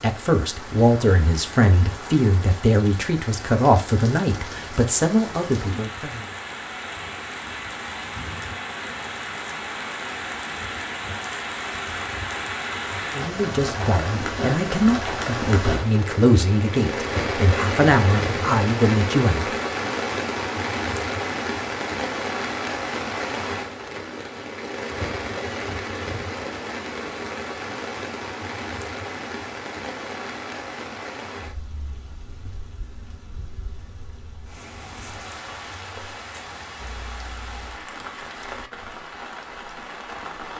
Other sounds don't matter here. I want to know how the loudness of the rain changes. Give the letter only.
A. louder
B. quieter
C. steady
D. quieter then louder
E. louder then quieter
E.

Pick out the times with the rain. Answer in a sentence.
You can hear the rain from 0.0 to 40.5 s.